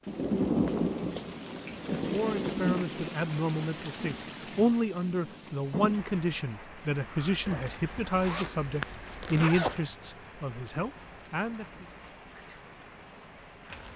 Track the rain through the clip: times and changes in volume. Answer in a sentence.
The rain can be heard from 0.0 to 13.9 s, getting quieter.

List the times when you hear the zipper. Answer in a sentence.
The zipper can be heard from 7.4 to 9.9 s.